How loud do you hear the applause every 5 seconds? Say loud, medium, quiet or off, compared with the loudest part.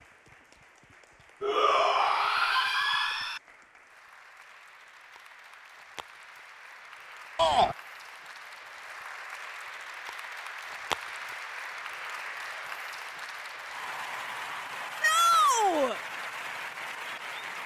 quiet, medium, loud, loud.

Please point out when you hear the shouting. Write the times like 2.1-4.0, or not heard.
1.4-3.4, 7.3-7.8, 15.0-16.0.